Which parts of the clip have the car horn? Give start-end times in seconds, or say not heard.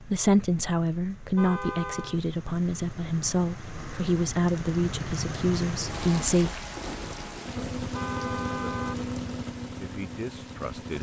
1.4-2.2, 7.9-9.0.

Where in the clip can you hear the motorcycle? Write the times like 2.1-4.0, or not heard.
7.5-10.9.